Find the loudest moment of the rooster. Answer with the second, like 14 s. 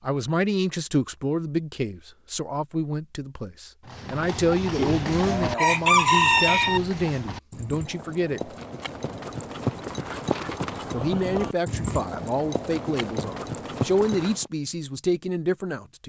6 s.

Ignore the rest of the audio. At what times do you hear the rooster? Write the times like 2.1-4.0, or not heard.
4.8-6.8.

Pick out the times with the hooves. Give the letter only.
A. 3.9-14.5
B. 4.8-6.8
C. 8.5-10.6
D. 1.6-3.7
A.